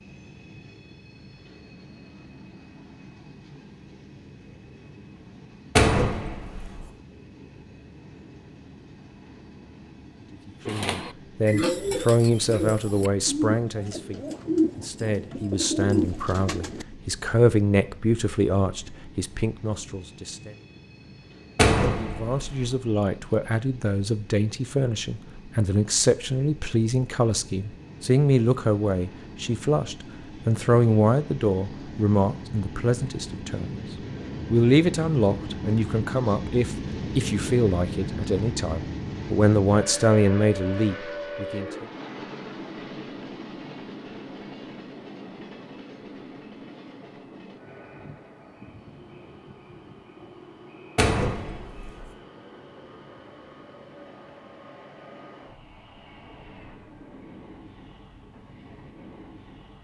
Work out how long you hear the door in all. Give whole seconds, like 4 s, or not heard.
3 s.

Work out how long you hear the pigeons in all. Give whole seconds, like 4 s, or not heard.
6 s.